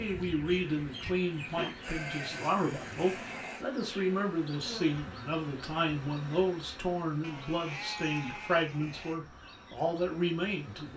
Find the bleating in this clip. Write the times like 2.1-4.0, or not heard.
1.8-3.6, 7.2-9.2.